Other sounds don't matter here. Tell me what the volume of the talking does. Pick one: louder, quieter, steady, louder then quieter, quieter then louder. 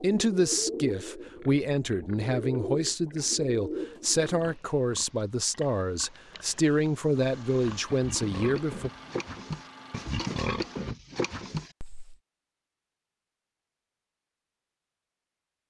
steady.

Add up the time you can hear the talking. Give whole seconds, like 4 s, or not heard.
9 s.